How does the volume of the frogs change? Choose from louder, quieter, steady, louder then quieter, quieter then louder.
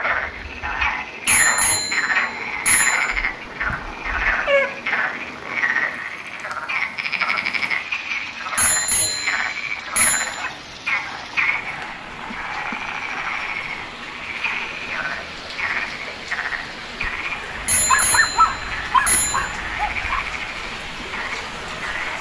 quieter.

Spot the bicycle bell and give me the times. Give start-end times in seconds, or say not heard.
1.2-3.0, 8.6-10.2, 17.6-19.4.